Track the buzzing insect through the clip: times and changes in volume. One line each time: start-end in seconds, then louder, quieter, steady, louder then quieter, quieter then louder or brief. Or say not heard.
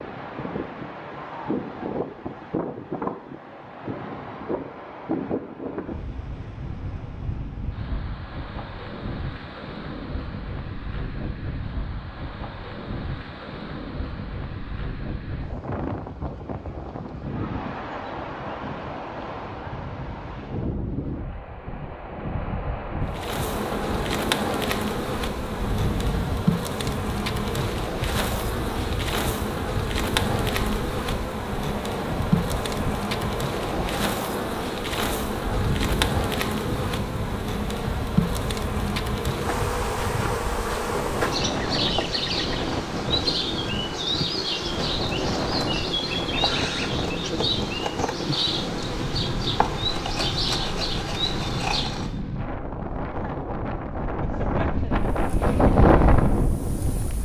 23.1-52.2 steady
55.0-57.2 brief.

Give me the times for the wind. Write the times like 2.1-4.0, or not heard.
0.0-57.2.